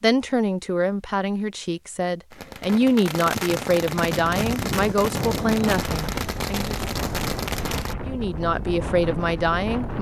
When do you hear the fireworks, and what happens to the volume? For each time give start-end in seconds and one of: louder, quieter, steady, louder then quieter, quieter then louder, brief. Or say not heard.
2.3-8.0 steady.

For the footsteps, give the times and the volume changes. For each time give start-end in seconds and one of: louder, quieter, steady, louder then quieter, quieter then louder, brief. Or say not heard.
not heard.